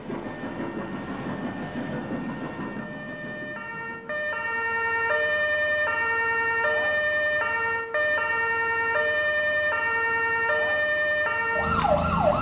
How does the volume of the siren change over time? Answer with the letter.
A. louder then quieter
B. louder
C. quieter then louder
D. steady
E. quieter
B.